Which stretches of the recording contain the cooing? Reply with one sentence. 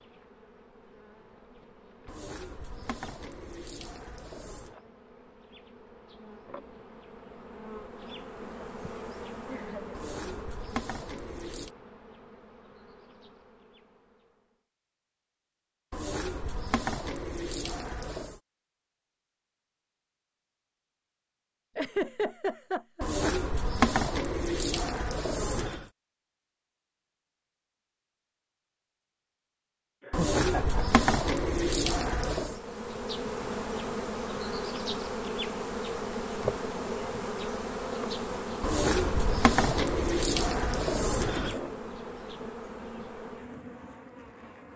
The cooing can be heard from 2.0 to 4.8 s, from 9.9 to 11.7 s, from 15.9 to 18.4 s, from 23.0 to 25.9 s, from 30.1 to 32.6 s and from 38.6 to 41.6 s.